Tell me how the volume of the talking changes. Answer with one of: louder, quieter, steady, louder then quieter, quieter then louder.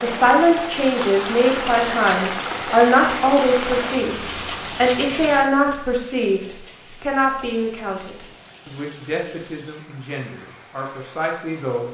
quieter.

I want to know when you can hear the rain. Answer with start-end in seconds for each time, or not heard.
0.0-11.8.